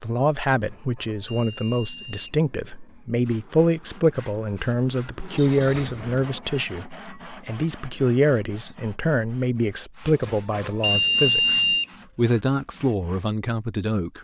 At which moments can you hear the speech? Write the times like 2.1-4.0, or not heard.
0.0-14.1.